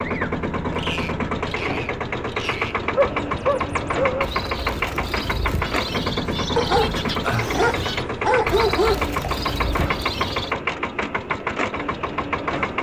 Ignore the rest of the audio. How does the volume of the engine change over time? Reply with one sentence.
The volume of the engine stays about the same.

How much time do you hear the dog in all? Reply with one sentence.
The dog can be heard for 4 seconds in total.